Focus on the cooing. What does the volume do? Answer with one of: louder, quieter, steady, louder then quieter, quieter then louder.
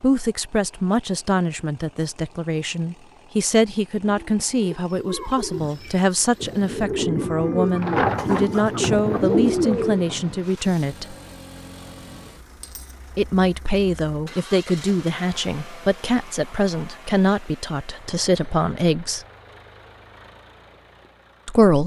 louder.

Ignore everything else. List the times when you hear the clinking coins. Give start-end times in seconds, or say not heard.
12.6-13.0.